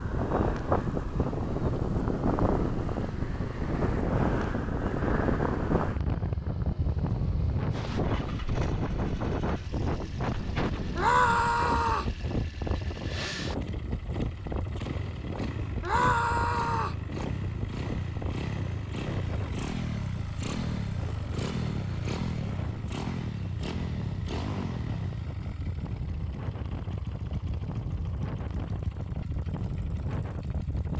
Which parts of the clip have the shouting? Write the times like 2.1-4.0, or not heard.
10.9-12.2, 15.8-17.0.